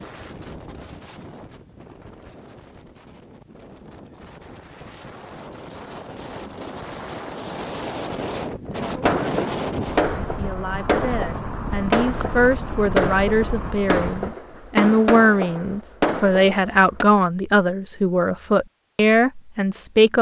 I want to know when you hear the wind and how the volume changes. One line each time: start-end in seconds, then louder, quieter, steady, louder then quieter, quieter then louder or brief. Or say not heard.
0.0-14.3 louder.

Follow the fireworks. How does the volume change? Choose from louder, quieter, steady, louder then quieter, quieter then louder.
steady.